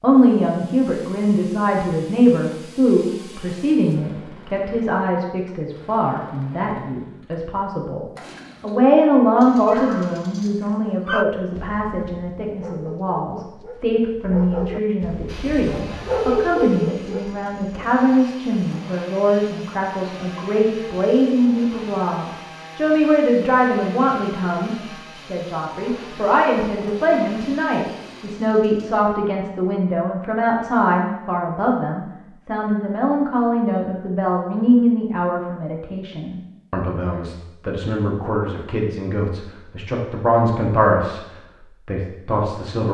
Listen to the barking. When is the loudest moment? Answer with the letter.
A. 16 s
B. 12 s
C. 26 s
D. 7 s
A.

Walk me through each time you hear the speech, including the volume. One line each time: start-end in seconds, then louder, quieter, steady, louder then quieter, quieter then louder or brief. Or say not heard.
0.0-42.8 steady.